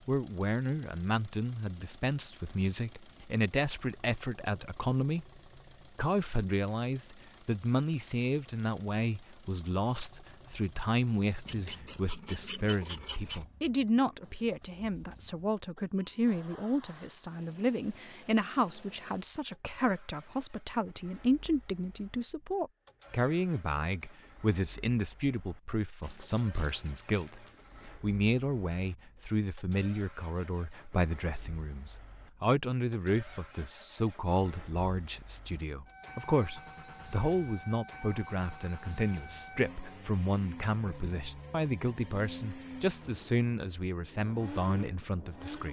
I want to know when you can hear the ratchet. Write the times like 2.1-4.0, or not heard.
11.4-13.4, 26.0-27.6.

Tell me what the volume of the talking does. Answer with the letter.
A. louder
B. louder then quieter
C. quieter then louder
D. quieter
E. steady
E.